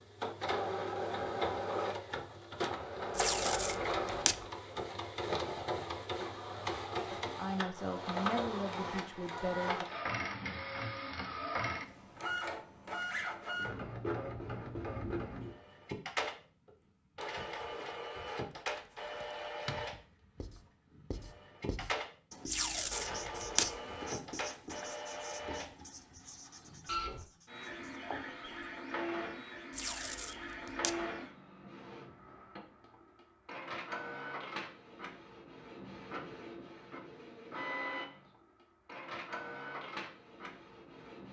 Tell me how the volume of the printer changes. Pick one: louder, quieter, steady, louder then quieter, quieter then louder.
quieter.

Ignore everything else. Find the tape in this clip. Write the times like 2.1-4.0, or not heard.
3.1-4.5, 22.4-23.8, 29.7-31.0.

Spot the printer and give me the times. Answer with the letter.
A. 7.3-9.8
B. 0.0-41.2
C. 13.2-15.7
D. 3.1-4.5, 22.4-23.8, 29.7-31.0
B.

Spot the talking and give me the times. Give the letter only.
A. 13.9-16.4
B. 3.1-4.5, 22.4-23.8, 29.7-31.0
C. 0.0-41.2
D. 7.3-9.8
D.